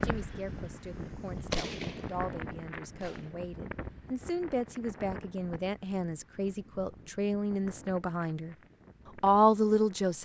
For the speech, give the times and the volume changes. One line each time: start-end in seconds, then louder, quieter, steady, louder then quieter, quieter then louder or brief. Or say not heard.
0.0-8.6 louder
9.2-10.1 brief.